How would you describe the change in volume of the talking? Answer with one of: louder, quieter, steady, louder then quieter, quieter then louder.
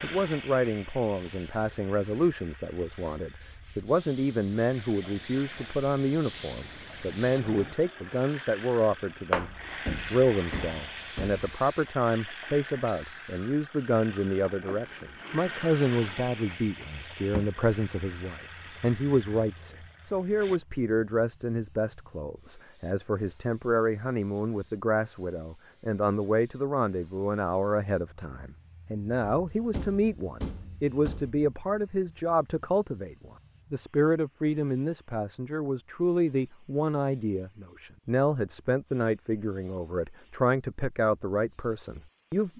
steady.